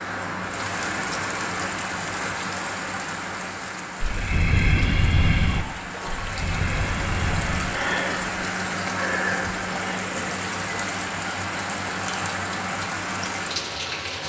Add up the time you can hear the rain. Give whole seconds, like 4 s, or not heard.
14 s.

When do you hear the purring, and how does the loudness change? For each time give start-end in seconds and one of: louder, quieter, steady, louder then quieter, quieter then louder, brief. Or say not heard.
not heard.